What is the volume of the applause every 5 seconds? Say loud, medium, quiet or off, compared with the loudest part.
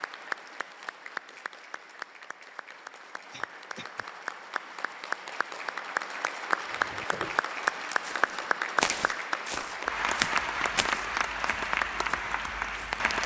medium, loud, loud.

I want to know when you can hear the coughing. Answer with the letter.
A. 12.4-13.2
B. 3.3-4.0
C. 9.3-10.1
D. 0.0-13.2
B.